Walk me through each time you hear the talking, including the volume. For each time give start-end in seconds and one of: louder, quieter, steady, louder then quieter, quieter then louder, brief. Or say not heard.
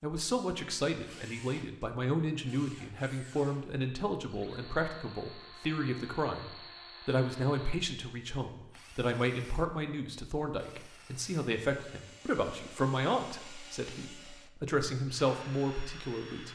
0.0-16.5 steady.